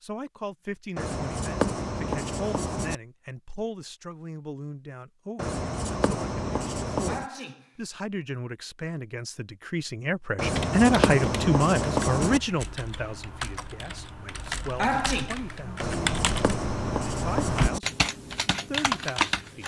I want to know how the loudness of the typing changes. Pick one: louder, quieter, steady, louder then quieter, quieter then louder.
louder.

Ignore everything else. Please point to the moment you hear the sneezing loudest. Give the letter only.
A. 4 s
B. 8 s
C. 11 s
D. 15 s
D.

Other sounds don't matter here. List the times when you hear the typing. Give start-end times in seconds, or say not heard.
10.4-19.6.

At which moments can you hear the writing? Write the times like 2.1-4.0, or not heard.
0.9-3.0, 5.3-7.2, 10.3-12.4, 15.8-17.8.